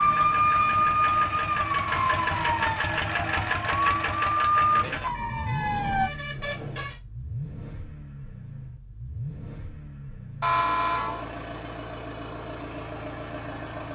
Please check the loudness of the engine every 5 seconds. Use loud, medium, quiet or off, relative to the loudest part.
loud, medium, medium.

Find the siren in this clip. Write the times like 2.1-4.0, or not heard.
0.0-6.1.